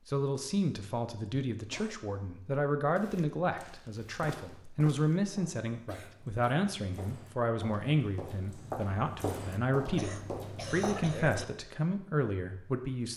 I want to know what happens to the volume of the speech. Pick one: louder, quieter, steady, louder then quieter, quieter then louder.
steady.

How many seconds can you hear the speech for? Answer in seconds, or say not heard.
13 s.